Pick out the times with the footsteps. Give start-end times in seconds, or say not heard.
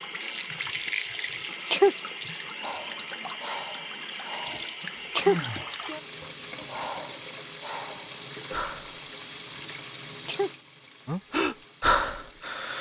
not heard.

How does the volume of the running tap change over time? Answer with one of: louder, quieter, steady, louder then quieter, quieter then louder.
quieter.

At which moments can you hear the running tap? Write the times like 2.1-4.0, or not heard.
0.0-12.7.